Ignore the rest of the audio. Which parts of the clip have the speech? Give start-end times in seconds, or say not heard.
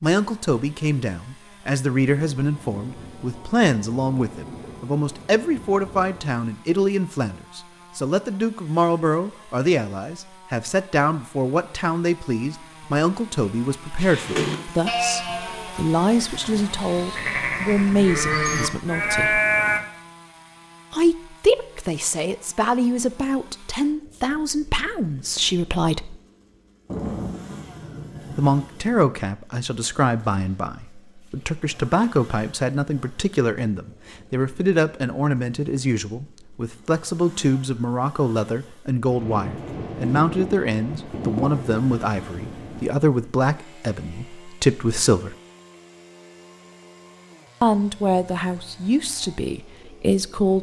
0.0-19.4, 20.9-26.2, 28.4-45.4, 47.6-50.5.